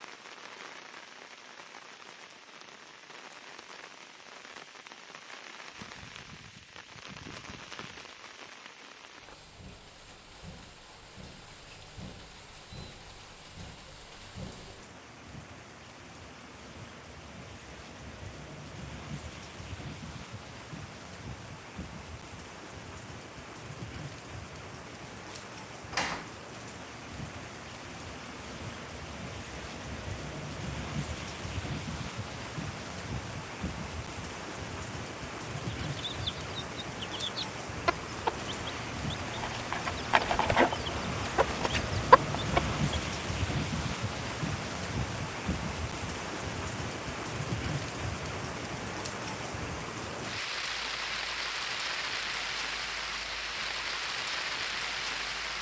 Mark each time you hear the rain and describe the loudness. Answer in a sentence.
The rain can be heard from 0.0 to 55.5 s, getting louder.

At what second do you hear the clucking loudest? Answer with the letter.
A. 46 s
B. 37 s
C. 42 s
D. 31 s
C.